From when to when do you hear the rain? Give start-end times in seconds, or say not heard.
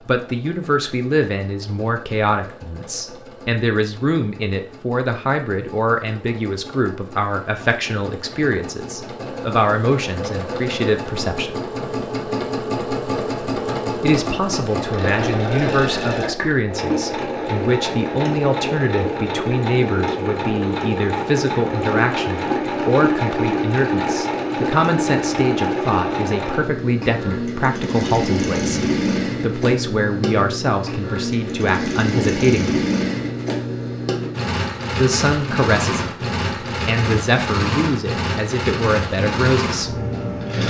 not heard.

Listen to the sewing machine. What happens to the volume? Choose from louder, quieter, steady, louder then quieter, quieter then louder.
louder.